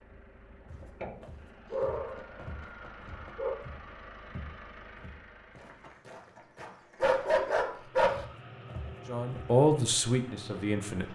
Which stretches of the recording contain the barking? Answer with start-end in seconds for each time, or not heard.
1.7-3.5, 7.0-8.2.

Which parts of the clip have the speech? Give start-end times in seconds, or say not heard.
9.1-11.0.